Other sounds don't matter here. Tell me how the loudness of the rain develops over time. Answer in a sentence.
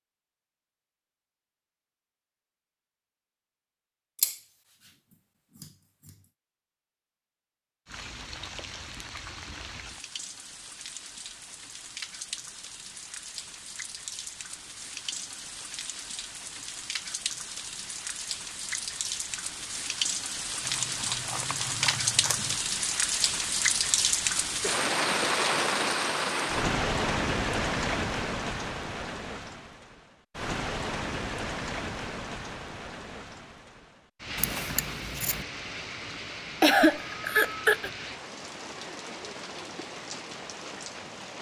The volume of the rain goes up, then down.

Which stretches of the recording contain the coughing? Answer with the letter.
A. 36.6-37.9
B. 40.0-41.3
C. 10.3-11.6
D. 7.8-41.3
A.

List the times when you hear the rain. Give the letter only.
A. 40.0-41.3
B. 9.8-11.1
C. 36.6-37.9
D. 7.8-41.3
D.